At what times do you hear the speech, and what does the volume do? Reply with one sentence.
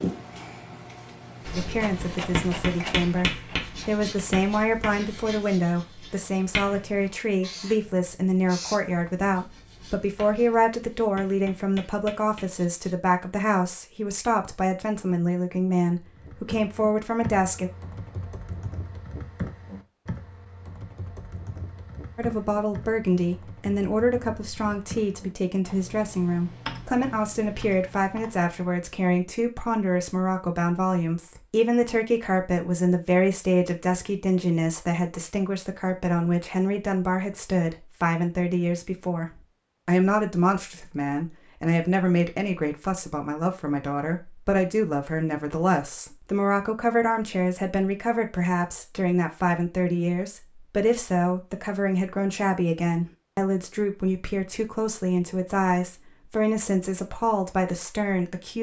The speech can be heard from 1.6 to 17.7 s, at a steady volume; and from 22.1 to 58.5 s, at a steady volume.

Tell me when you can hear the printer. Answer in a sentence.
The printer can be heard from 0.0 to 4.4 s.